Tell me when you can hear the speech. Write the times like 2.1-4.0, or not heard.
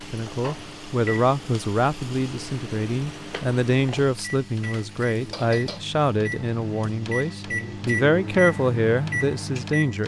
0.1-10.0.